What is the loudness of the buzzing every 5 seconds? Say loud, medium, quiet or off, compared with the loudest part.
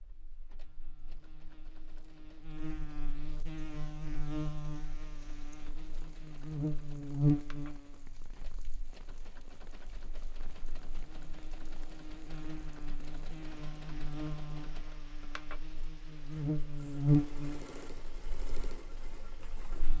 medium, loud, quiet, loud.